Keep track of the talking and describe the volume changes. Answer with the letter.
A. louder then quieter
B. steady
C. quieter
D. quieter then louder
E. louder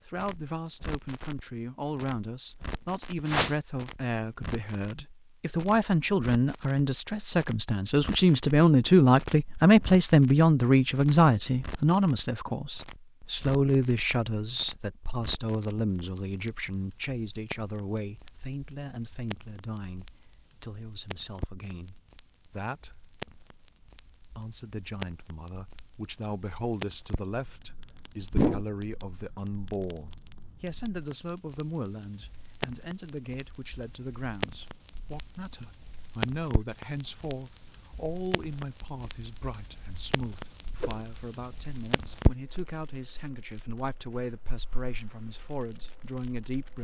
C.